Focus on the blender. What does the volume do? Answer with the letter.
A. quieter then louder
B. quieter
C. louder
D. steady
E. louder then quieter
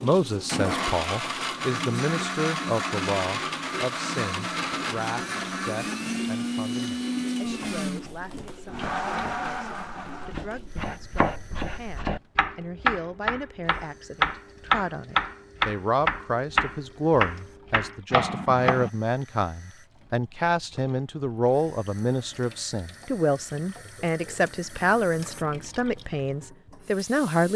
D.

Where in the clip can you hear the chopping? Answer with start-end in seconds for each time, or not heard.
7.4-18.9.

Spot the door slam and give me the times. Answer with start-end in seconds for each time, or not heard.
not heard.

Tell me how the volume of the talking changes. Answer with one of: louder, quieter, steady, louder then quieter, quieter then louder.
quieter then louder.